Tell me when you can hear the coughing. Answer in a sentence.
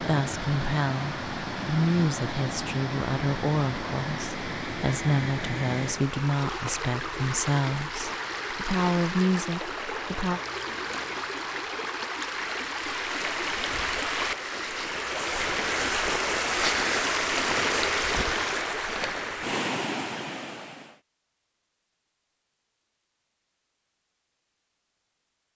You can't hear the coughing here.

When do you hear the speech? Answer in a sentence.
You can hear the speech from 0.0 to 10.4 s.